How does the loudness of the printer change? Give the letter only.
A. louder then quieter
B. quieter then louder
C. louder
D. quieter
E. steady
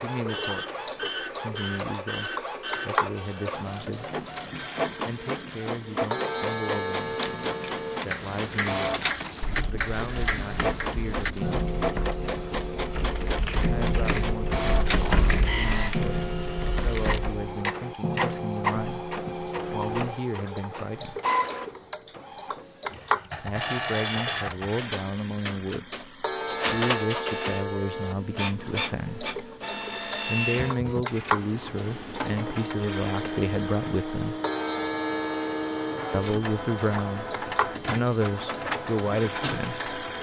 E.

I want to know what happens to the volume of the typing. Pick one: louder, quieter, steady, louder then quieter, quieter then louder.
louder.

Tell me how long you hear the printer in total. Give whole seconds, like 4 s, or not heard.
40 s.